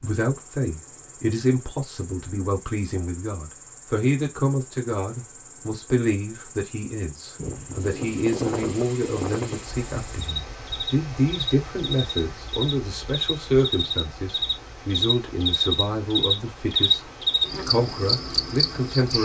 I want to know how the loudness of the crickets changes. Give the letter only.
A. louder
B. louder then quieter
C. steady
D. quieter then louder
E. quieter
A.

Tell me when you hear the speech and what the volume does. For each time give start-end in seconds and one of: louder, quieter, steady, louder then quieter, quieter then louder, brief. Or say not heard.
0.0-19.1 steady.